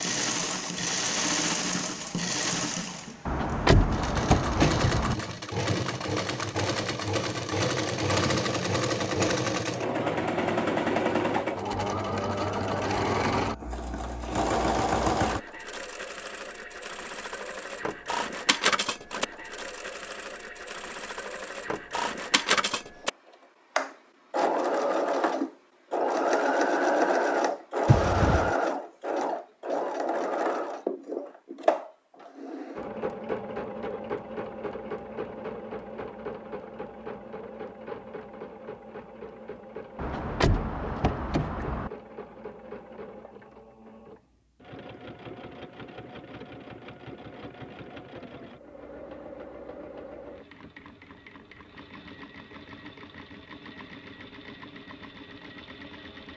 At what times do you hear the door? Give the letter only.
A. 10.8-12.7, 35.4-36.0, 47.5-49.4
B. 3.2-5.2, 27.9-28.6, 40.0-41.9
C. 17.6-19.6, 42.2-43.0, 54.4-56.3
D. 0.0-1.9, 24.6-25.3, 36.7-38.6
B.